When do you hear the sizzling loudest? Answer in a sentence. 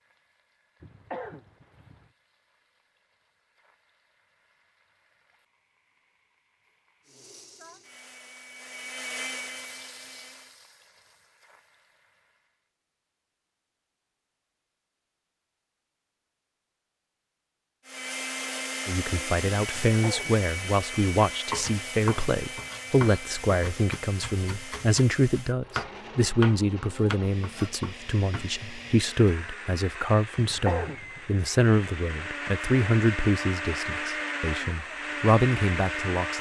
The volume of the sizzling peaks at 10 seconds.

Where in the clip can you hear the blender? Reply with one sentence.
You can hear the blender from 7.0 to 10.6 s and from 17.9 to 36.3 s.